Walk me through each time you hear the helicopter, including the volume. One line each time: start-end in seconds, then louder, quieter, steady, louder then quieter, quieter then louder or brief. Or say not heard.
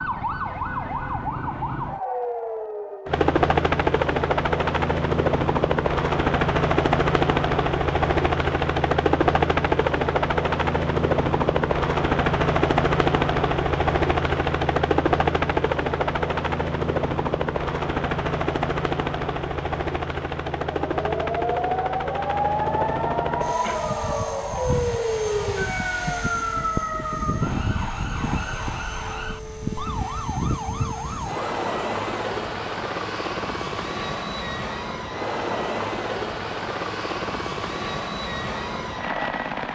3.0-39.7 quieter.